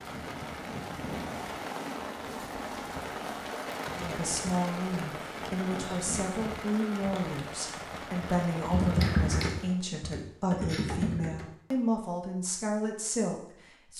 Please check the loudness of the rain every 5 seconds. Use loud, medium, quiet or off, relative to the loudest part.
loud, loud, off.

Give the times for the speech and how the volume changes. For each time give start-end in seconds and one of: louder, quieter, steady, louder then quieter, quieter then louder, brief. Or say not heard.
4.0-13.9 steady.